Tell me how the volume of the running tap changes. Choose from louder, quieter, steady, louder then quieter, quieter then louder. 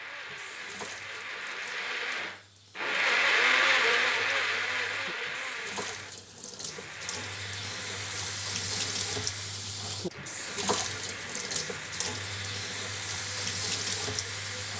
louder.